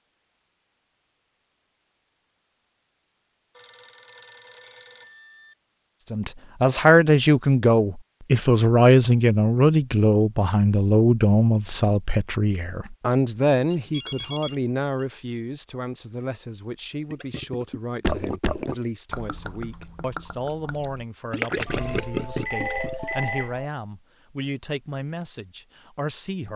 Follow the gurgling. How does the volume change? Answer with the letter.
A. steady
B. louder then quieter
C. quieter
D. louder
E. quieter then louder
E.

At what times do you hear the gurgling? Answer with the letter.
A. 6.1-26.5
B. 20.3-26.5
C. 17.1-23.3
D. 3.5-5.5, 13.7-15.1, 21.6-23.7
C.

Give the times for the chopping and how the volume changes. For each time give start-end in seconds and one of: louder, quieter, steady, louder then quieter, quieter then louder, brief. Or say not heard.
not heard.